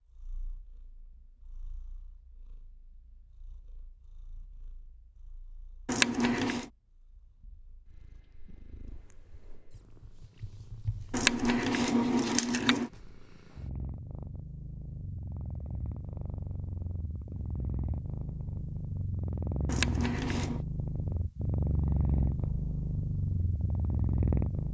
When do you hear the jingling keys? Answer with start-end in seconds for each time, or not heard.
5.8-6.7, 11.1-12.9, 19.6-20.6.